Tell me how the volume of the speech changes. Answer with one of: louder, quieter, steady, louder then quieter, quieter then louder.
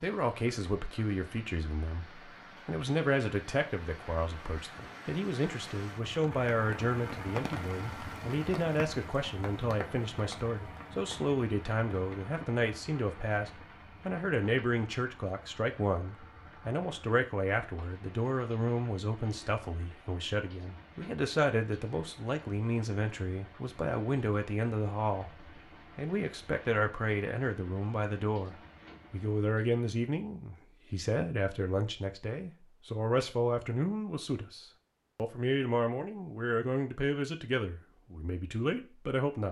steady.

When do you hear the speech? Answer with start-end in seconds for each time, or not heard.
0.0-39.4.